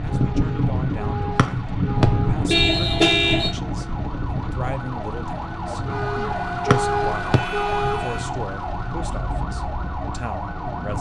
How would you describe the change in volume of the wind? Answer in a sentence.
The loudness of the wind goes down.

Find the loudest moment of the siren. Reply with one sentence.
The volume of the siren peaks at 7 seconds.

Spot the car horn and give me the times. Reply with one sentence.
The car horn can be heard from 2.5 to 3.5 s and from 5.9 to 8.2 s.